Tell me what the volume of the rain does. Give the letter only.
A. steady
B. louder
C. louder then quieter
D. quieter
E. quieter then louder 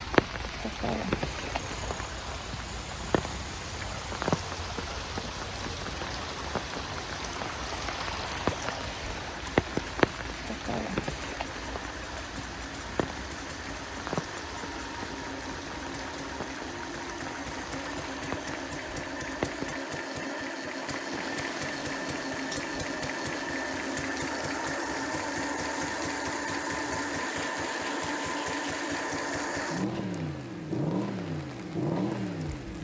D.